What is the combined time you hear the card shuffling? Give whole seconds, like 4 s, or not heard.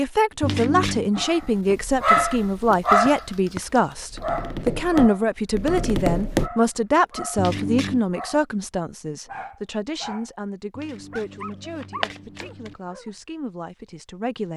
3 s.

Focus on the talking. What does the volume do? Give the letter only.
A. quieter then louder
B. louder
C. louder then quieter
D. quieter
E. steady
D.